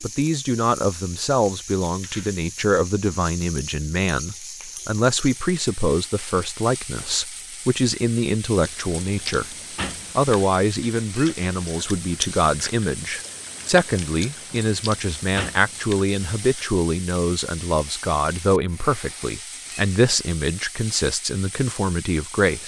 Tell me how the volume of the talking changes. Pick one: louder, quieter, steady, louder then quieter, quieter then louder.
steady.